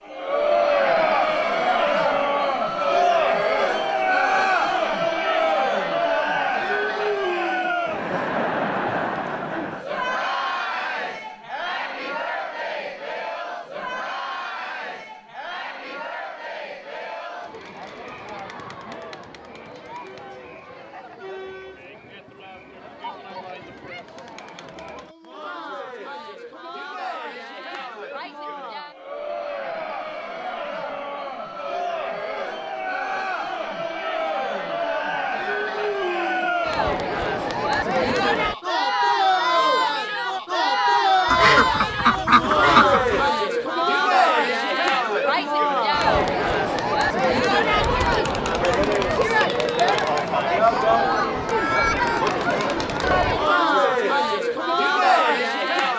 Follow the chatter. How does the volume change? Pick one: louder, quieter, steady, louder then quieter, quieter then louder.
quieter then louder.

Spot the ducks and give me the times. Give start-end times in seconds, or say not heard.
41.2-43.3.